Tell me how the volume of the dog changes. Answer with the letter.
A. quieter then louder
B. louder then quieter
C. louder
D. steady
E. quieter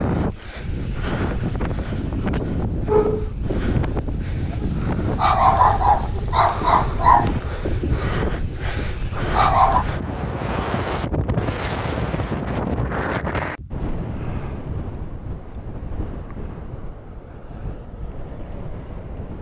B.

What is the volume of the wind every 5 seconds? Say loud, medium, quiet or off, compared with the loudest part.
loud, loud, loud, medium.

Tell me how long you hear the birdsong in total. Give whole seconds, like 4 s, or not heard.
not heard.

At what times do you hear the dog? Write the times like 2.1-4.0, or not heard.
2.9-9.8.